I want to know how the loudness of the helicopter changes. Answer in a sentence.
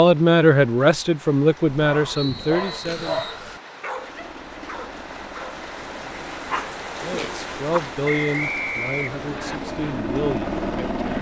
The volume of the helicopter goes up.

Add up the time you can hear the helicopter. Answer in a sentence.
The helicopter can be heard for 7 seconds in total.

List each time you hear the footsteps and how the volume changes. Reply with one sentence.
You can't hear the footsteps here.